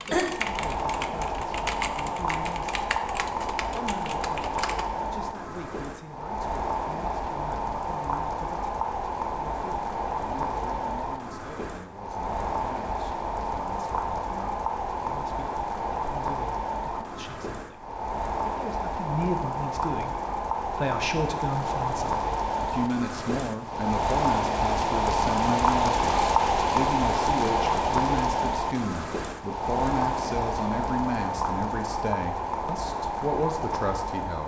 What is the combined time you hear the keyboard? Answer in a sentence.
The keyboard can be heard for 5 seconds in total.